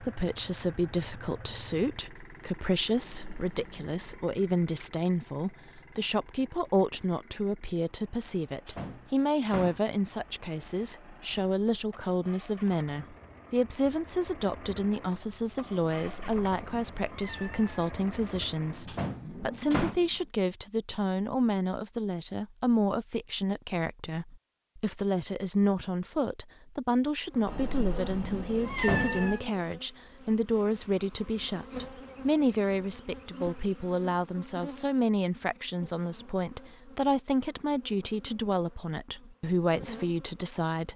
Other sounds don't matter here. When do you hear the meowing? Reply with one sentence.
The meowing can be heard from 3.0 to 4.2 s, from 15.9 to 17.9 s and from 27.4 to 29.4 s.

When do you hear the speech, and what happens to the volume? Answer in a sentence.
You can hear the speech from 0.0 to 40.9 s, at a steady volume.